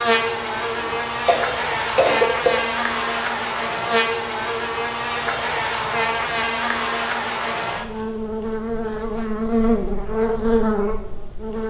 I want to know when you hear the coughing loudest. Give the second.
2 s.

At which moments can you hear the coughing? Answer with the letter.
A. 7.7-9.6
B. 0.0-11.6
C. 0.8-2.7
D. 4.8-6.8
C.